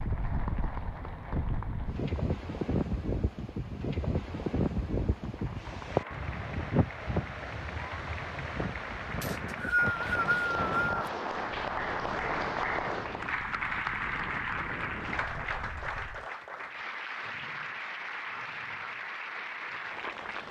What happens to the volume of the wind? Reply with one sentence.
The volume of the wind goes down.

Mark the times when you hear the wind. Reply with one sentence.
You can hear the wind from 0.0 to 16.2 s.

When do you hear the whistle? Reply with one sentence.
You can hear the whistle from 9.2 to 10.8 s.